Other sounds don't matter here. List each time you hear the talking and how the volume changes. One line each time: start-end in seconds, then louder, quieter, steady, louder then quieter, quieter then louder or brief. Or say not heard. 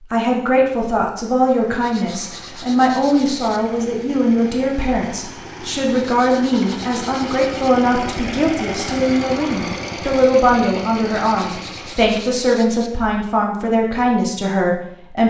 0.0-15.2 steady.